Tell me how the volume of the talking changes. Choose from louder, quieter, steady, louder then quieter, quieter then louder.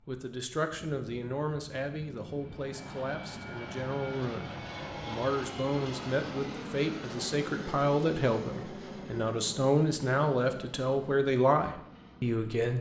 louder.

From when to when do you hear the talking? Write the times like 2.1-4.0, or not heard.
0.1-12.7.